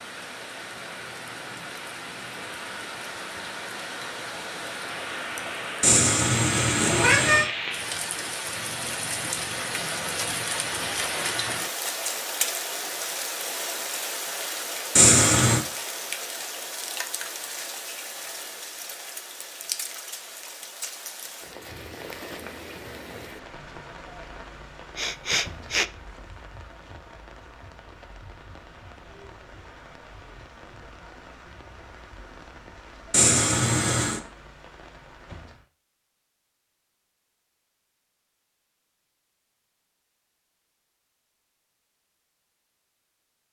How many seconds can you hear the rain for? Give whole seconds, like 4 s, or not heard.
36 s.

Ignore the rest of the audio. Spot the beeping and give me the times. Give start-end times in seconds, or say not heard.
not heard.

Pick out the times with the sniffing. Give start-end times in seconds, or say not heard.
24.9-25.9.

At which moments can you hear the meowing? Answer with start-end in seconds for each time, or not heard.
5.8-7.5, 14.9-15.7, 33.1-34.2.